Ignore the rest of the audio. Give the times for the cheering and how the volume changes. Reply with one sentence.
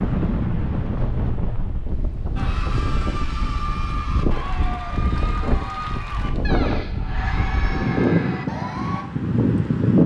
You can hear the cheering from 2.4 to 9.1 s, at a steady volume.